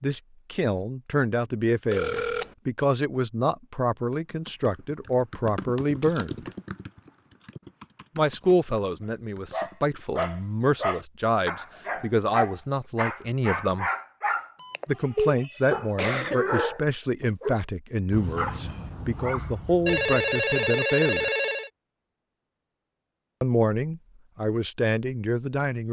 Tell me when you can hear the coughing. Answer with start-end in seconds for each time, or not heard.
15.4-16.6.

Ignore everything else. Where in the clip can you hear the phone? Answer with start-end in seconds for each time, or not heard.
1.9-2.5, 14.6-15.3, 19.9-21.7.